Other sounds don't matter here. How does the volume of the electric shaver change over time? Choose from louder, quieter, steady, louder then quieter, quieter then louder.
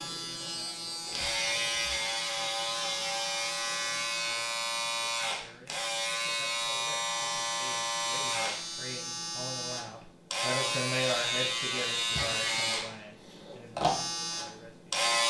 steady.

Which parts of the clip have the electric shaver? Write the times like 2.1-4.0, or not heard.
0.0-15.2.